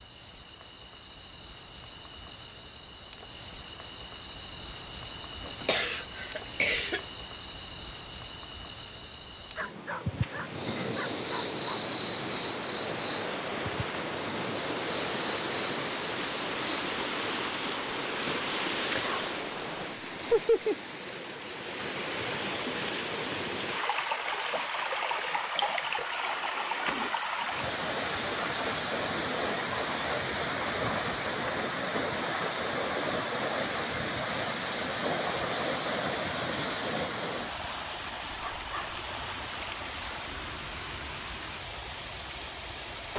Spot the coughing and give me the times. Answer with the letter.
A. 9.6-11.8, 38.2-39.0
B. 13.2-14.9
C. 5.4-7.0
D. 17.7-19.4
C.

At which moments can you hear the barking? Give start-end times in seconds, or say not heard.
9.6-11.8, 38.2-39.0.